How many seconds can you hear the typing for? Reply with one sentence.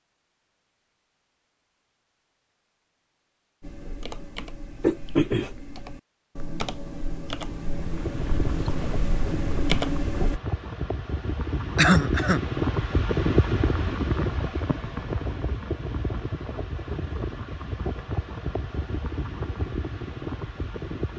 The typing can be heard for 7 seconds in total.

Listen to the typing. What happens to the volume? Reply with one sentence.
The loudness of the typing goes up.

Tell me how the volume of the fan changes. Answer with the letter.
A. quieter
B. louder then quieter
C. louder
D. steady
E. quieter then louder
B.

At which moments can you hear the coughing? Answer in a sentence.
You can hear the coughing from 4.8 to 5.5 s and from 11.8 to 12.4 s.